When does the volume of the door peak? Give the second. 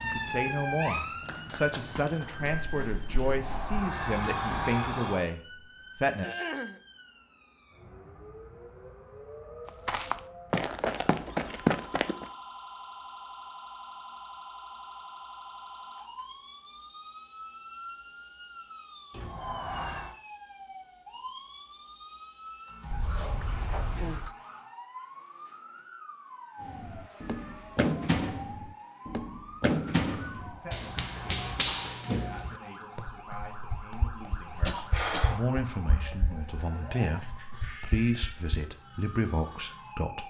5 s.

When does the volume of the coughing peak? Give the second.
35 s.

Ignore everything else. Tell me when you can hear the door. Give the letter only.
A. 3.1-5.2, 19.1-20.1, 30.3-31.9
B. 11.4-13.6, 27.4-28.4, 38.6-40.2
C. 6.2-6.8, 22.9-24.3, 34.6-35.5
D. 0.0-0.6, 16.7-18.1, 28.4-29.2
A.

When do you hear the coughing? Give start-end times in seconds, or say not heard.
6.2-6.8, 22.9-24.3, 34.6-35.5.